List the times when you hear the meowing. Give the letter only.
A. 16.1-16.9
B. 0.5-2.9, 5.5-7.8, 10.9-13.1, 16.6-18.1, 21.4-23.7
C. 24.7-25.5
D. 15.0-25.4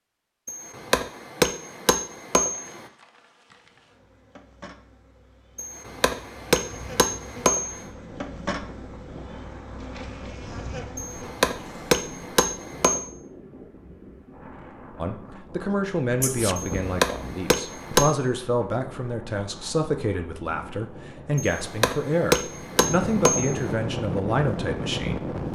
A.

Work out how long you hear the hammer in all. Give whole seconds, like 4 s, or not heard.
11 s.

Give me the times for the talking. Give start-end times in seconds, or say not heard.
15.0-25.4.